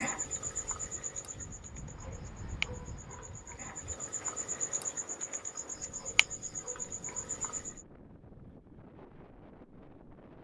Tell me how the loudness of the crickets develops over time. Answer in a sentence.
The loudness of the crickets stays about the same.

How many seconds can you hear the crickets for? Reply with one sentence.
You can hear the crickets for 8 seconds altogether.